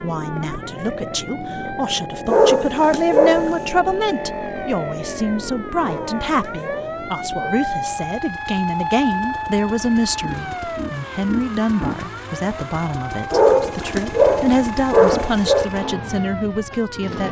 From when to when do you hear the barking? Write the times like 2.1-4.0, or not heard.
2.2-3.6, 5.8-7.5, 13.3-15.7.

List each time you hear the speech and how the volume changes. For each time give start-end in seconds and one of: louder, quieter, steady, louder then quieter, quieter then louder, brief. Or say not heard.
0.0-17.2 steady.